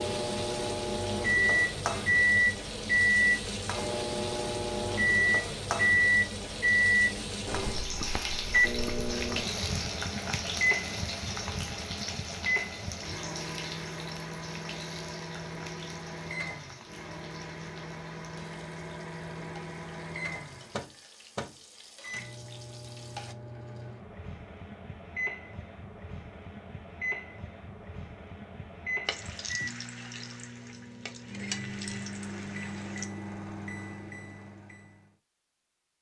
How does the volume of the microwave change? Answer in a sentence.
The volume of the microwave goes down.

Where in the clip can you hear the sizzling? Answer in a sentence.
The sizzling can be heard from 0.0 to 23.4 s and from 29.1 to 33.0 s.